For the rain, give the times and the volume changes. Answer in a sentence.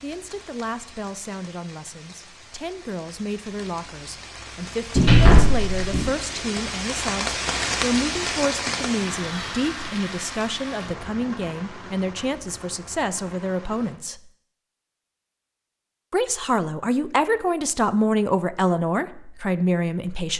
You can hear the rain from 0.0 to 14.0 s, getting louder then quieter.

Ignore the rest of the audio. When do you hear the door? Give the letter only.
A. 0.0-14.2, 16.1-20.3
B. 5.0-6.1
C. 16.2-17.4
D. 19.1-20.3
B.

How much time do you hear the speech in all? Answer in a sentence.
You can hear the speech for 18 seconds altogether.